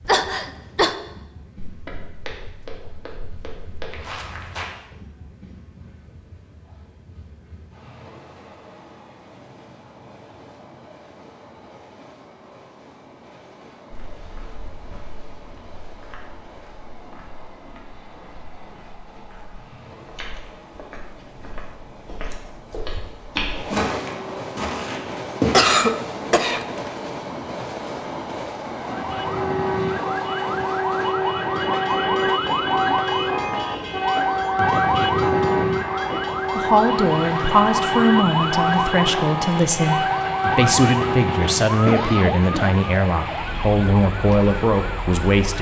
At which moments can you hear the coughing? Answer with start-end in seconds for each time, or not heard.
0.1-0.9, 25.5-26.9, 41.9-42.7.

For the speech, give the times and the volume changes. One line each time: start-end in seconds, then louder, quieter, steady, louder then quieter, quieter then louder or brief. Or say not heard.
36.5-45.5 steady.